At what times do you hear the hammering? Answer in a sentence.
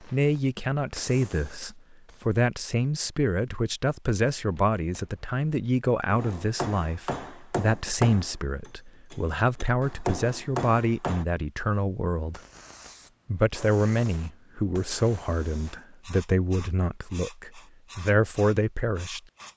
You can hear the hammering from 4.3 to 11.2 s.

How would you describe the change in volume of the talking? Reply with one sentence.
The loudness of the talking stays about the same.